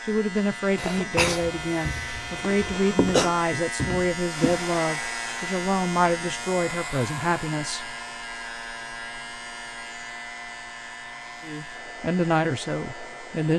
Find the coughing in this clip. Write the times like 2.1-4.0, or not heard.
0.8-3.3.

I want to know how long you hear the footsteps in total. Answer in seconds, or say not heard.
3 s.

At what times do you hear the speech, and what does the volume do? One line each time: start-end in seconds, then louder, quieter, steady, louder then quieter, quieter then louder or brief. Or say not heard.
0.0-8.0 steady
11.4-13.5 brief.